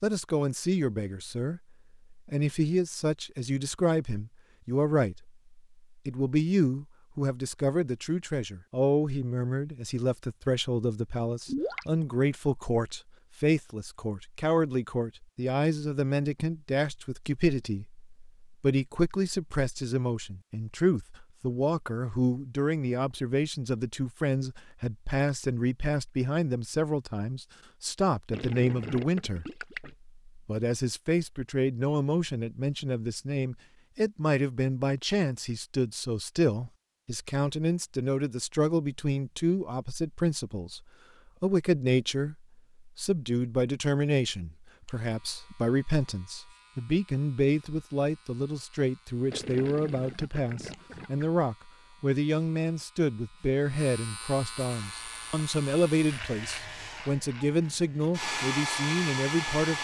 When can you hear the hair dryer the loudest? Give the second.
59 s.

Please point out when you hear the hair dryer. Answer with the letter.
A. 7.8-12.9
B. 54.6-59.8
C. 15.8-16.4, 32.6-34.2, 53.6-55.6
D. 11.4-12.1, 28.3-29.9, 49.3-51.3
B.